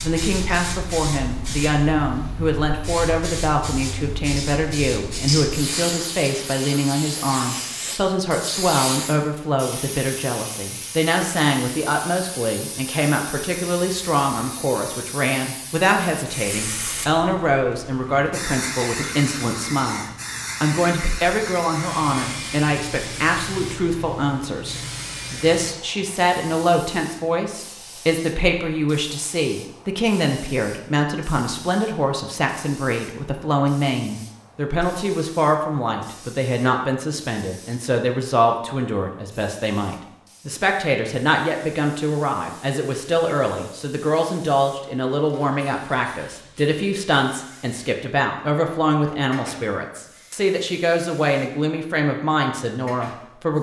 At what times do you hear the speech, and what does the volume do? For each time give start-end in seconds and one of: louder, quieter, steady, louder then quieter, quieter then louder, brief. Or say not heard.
0.0-53.5 steady.